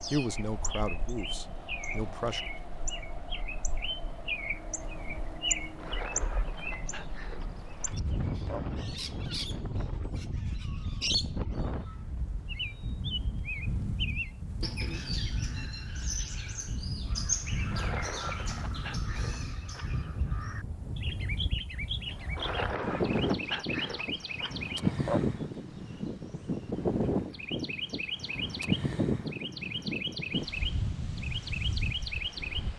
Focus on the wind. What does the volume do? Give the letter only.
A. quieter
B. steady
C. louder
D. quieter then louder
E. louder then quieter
C.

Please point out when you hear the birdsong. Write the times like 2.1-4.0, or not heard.
0.0-32.7.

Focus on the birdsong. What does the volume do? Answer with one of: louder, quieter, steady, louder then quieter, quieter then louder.
steady.